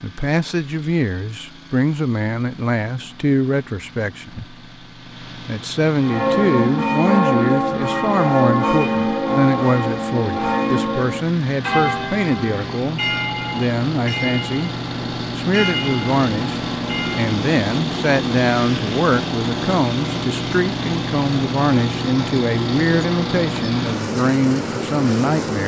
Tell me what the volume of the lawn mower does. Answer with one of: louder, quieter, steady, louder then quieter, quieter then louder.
louder.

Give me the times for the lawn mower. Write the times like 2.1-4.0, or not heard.
0.0-25.6.